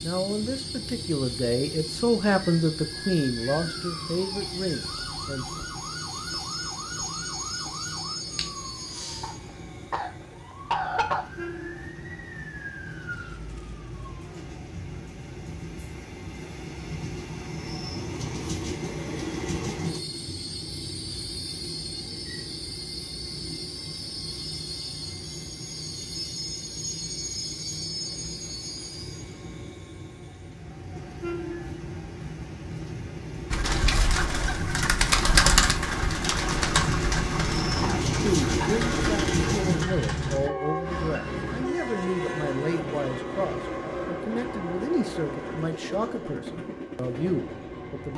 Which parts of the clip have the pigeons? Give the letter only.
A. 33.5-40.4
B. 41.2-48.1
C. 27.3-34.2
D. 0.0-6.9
A.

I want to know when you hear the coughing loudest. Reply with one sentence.
The volume of the coughing peaks at 11 seconds.